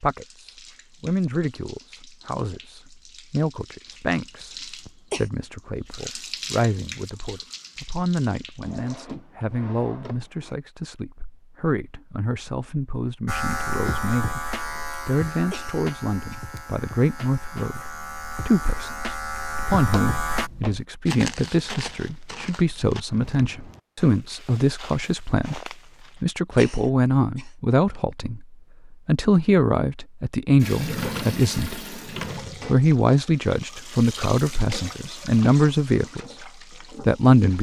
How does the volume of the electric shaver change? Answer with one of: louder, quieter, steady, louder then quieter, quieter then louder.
quieter then louder.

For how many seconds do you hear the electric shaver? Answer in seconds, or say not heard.
7 s.